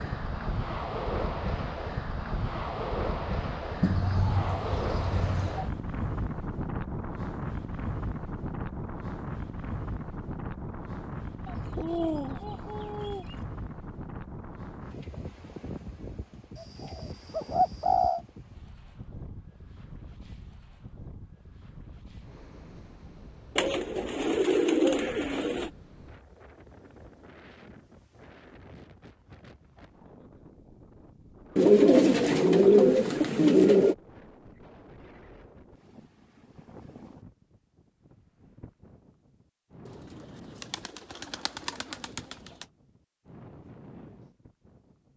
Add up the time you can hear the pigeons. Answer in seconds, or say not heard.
12 s.